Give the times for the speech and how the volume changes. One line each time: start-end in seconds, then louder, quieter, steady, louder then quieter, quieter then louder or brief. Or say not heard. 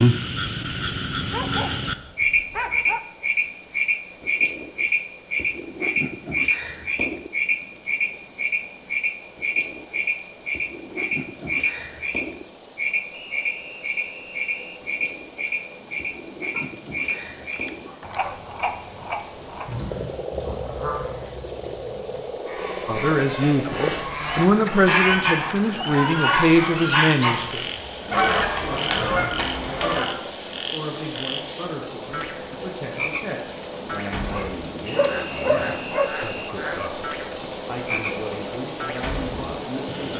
22.9-40.1 quieter.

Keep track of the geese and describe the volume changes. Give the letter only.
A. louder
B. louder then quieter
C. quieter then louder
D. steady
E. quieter
A.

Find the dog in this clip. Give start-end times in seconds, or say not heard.
0.6-3.0, 16.6-18.4, 34.3-36.1.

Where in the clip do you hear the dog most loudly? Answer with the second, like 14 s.
36 s.